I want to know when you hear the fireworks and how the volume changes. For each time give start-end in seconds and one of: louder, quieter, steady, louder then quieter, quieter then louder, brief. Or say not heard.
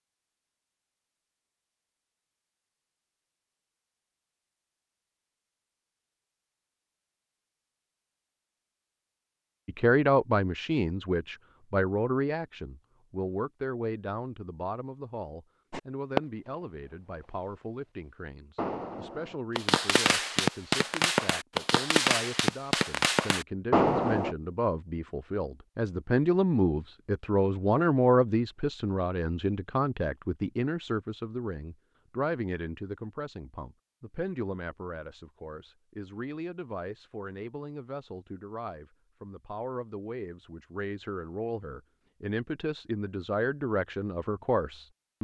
15.7-17.6 brief
18.6-24.4 louder.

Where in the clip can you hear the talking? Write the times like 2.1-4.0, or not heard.
9.7-45.2.